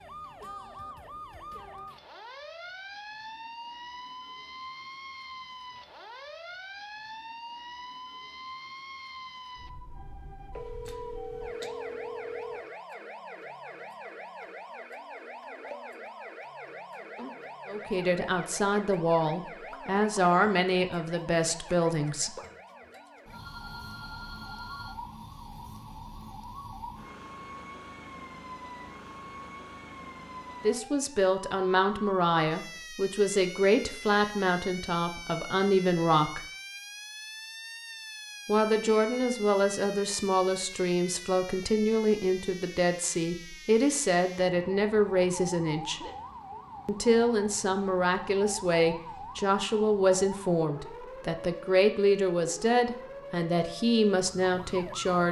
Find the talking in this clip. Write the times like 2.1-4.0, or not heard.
17.6-22.4, 30.6-36.5, 38.5-46.0, 46.9-55.2.